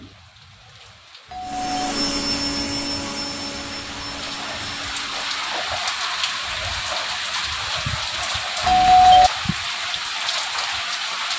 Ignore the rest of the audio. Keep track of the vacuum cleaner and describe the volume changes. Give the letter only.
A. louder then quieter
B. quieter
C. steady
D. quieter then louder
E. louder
B.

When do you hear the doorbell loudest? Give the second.
9 s.